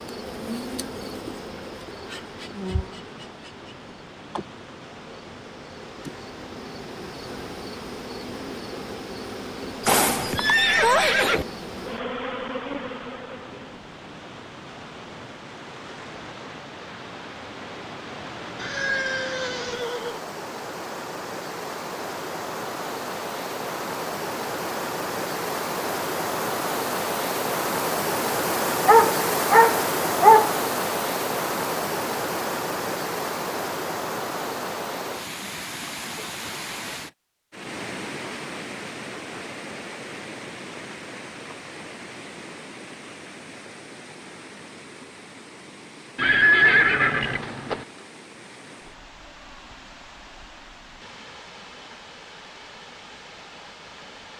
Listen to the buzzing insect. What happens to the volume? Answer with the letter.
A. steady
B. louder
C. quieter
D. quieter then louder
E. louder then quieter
D.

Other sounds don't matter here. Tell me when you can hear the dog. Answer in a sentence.
You can hear the dog from 28.9 to 30.6 s.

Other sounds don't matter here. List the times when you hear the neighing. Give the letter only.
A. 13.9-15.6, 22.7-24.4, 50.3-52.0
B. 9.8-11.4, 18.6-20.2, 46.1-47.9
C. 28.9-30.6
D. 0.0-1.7
B.